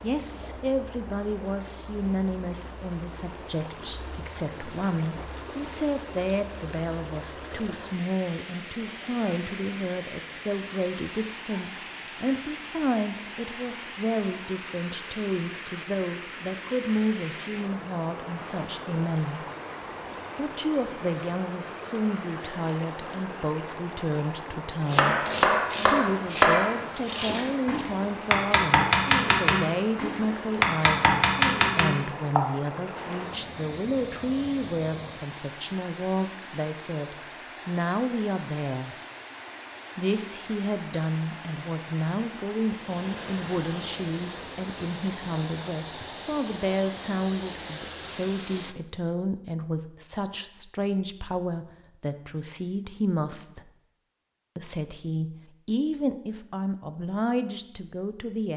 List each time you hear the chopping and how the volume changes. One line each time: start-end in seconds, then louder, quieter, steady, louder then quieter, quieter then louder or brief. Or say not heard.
24.9-32.4 quieter then louder.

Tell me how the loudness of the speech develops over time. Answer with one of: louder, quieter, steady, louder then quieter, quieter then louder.
steady.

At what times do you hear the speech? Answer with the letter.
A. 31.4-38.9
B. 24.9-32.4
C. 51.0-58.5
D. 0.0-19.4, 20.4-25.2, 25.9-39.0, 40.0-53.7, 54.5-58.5
D.